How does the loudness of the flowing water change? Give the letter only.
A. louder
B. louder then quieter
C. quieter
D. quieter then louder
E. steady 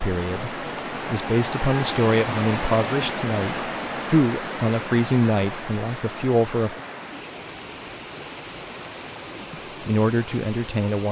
C.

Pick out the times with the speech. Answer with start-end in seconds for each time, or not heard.
0.0-6.8, 9.8-11.0.